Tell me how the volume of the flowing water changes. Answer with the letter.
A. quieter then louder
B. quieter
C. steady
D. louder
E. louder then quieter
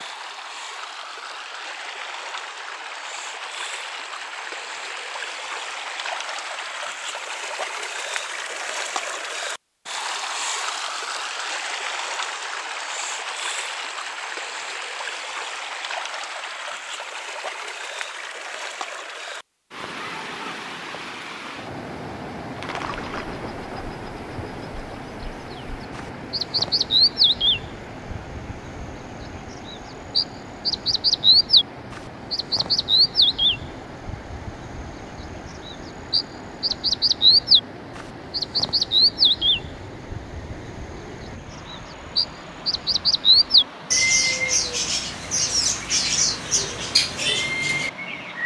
B.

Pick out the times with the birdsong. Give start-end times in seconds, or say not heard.
22.6-48.4.